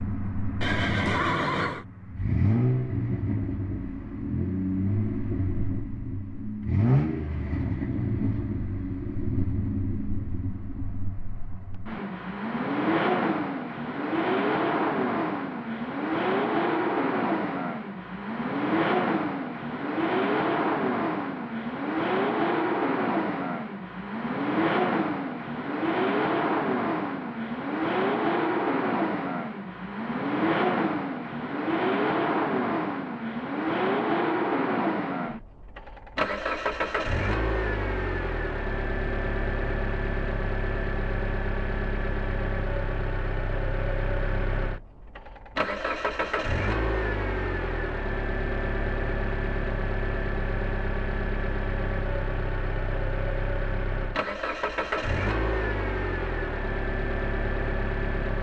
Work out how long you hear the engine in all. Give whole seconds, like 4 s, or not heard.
58 s.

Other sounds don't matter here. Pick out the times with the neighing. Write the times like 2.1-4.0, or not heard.
0.6-1.9.